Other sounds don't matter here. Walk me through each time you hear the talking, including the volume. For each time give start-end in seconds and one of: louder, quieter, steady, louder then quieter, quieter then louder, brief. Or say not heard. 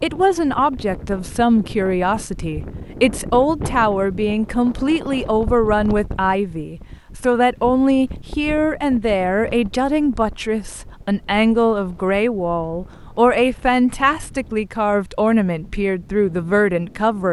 0.0-17.2 steady.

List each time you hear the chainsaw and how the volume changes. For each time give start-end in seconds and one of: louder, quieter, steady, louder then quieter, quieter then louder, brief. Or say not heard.
not heard.